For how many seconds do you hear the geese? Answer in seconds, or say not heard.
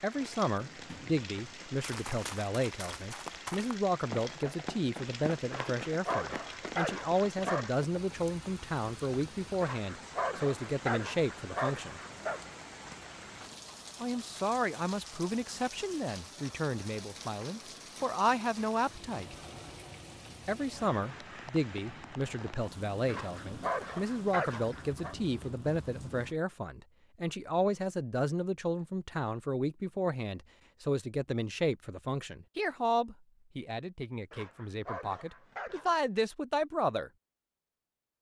not heard.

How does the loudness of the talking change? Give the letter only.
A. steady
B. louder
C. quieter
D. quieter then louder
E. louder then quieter
A.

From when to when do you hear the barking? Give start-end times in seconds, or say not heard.
5.5-7.7, 9.6-12.4, 23.1-25.1, 34.3-36.0.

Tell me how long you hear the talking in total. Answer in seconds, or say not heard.
34 s.